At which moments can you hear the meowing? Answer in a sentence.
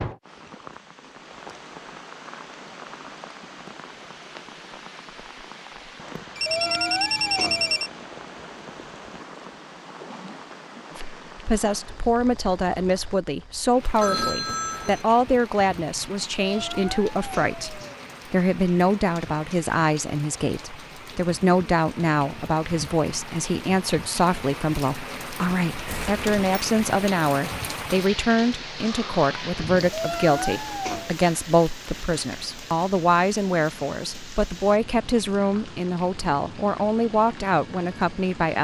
The meowing can be heard from 6.4 to 7.8 s, from 16.4 to 17.9 s and from 29.9 to 31.1 s.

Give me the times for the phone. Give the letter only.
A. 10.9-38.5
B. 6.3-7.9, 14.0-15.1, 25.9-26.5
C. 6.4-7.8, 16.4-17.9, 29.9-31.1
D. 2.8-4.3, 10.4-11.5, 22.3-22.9
B.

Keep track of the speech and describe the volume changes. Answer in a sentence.
The volume of the speech stays about the same.